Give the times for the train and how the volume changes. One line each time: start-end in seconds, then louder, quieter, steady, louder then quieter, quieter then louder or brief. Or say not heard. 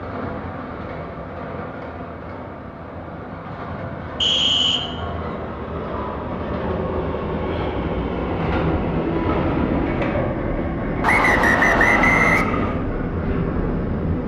0.0-14.2 louder.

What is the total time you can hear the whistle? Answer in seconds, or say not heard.
2 s.